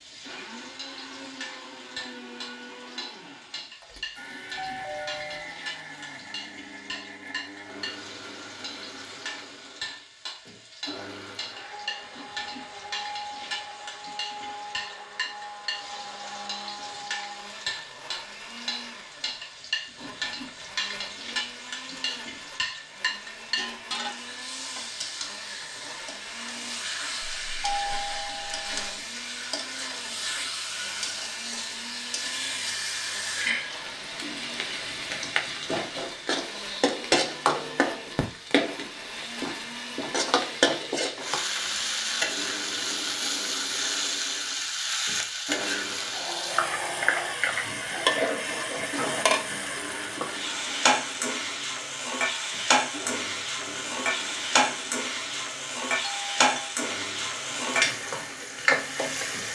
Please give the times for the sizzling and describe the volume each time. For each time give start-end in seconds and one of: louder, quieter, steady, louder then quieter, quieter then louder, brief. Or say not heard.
0.0-59.5 louder.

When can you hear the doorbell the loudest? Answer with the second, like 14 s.
28 s.